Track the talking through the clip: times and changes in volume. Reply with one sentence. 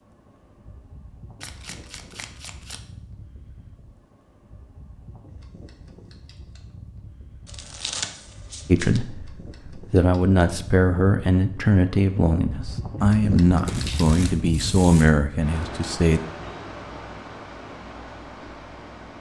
You can hear the talking from 8.7 to 16.2 s, at a steady volume.